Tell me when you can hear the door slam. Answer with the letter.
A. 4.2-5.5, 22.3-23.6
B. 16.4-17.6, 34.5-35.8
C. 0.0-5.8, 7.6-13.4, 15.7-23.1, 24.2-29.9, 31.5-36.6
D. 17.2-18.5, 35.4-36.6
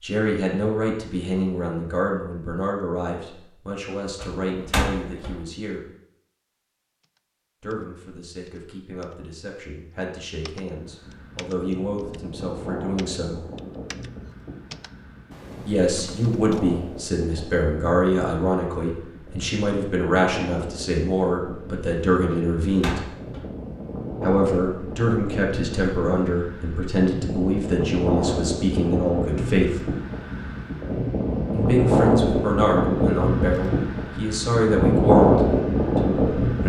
A.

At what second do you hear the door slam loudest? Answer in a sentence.
The volume of the door slam peaks at 5 seconds.